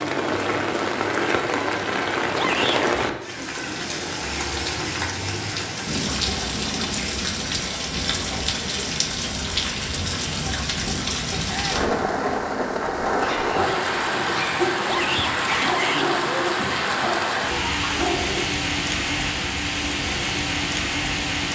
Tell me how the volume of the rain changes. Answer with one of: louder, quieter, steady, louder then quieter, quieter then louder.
steady.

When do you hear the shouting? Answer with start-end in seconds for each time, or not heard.
2.4-2.9, 11.4-11.8, 14.8-16.1.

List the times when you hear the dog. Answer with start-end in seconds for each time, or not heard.
13.2-18.4.